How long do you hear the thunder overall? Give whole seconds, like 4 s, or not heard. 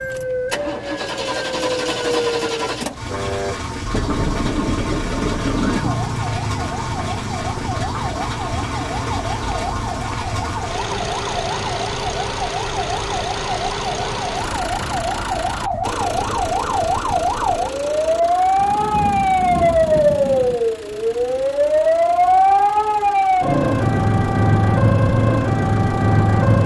4 s.